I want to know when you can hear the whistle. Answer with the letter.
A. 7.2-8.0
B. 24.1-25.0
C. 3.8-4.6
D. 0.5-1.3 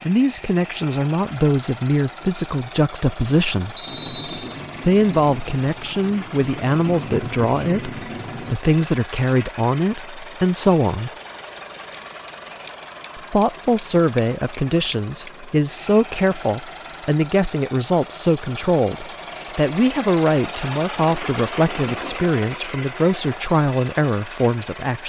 C.